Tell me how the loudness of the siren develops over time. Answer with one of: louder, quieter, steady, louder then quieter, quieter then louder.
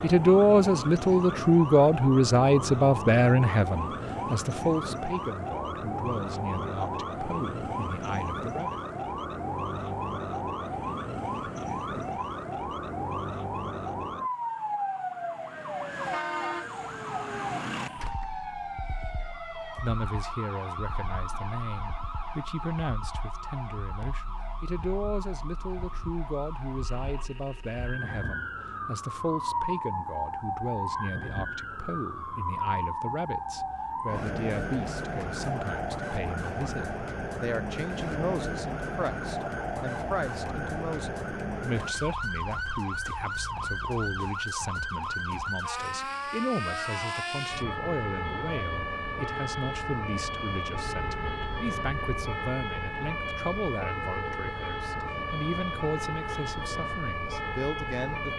steady.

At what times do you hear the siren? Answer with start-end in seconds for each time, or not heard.
0.0-58.3.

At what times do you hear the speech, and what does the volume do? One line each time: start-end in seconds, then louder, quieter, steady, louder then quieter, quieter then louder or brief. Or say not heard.
0.0-8.8 quieter
19.8-58.3 steady.